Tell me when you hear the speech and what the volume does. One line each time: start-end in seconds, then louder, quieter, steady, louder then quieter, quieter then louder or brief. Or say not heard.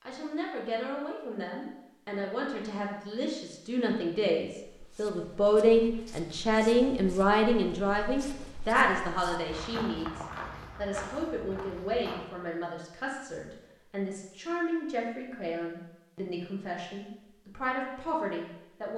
0.1-18.9 louder then quieter.